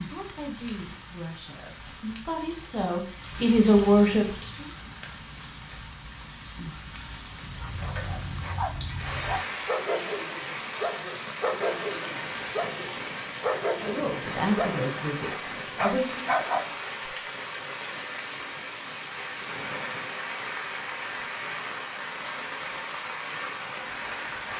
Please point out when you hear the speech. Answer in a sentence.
You can hear the speech from 0.1 to 4.7 s and from 13.8 to 16.2 s.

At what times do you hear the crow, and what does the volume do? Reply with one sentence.
You can't hear the crow here.